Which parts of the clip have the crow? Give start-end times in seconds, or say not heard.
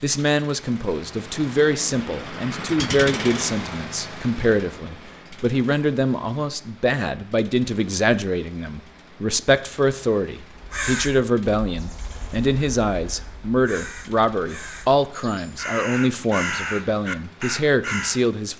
10.6-18.2.